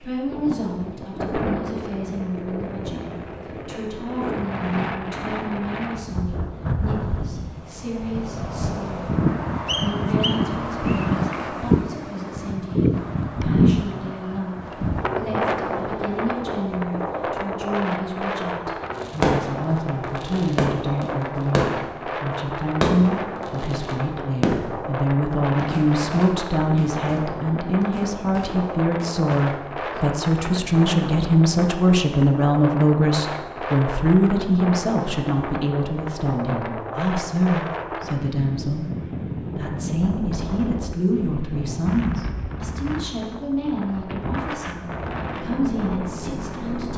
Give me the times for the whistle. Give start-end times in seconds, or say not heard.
9.7-11.1.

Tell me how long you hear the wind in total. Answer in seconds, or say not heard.
47 s.